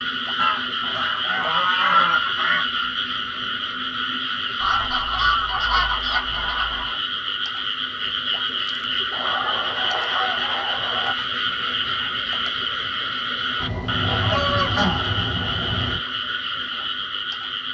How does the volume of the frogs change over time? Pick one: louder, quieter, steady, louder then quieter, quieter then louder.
steady.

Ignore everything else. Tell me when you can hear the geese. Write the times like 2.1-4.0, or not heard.
0.3-2.7, 4.5-7.0, 9.1-11.2, 13.6-16.0.